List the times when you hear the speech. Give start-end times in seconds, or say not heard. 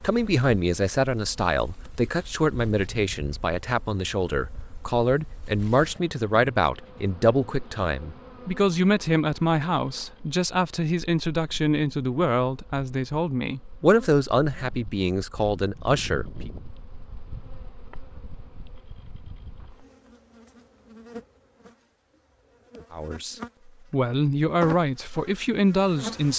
0.0-16.5, 22.9-26.3.